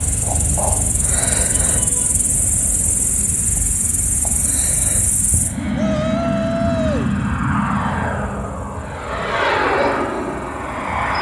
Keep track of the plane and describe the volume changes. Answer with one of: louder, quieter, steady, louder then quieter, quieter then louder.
louder.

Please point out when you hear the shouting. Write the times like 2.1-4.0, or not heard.
1.5-2.1, 5.8-7.1.